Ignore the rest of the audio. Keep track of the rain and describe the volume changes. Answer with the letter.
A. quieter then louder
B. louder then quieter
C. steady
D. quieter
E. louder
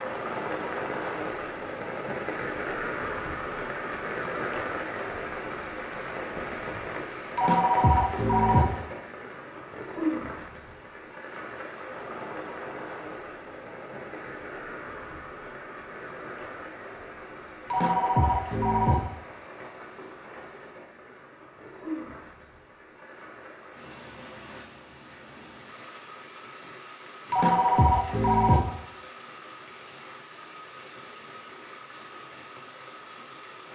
D.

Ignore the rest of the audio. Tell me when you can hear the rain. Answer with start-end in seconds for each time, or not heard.
0.0-33.6.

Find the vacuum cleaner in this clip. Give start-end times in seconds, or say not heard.
not heard.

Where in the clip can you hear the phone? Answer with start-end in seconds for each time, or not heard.
7.3-8.7, 17.7-18.9, 27.3-28.6.